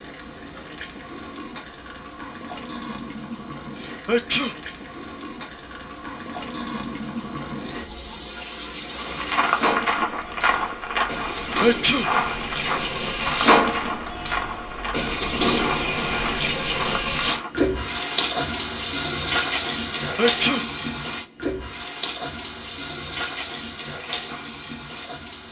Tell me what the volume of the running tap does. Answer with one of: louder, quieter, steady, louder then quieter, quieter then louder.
louder then quieter.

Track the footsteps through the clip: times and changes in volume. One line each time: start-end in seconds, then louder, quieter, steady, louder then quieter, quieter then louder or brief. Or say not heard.
8.9-17.6 quieter.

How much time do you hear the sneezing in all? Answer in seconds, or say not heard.
2 s.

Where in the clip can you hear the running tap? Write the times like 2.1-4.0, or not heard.
0.0-25.4.